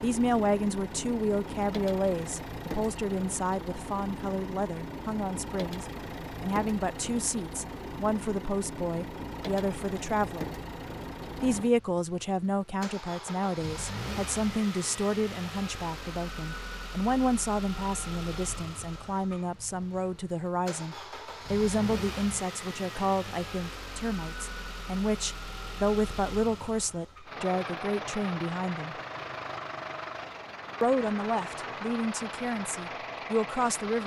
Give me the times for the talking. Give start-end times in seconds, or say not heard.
0.0-10.5, 11.4-28.9, 30.8-34.0.